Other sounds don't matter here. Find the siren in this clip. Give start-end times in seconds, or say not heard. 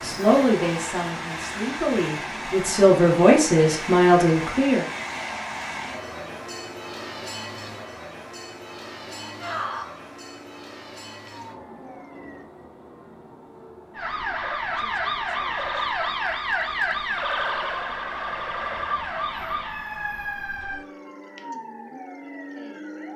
9.2-12.4, 13.9-23.1.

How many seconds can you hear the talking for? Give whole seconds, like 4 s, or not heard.
5 s.